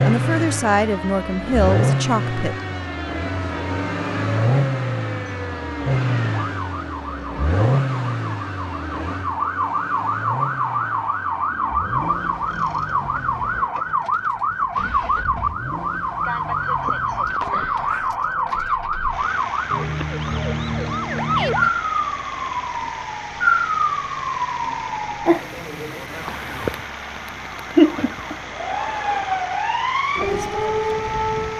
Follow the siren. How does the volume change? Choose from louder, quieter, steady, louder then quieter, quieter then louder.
louder.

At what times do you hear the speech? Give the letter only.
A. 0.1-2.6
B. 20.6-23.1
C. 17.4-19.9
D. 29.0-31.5
A.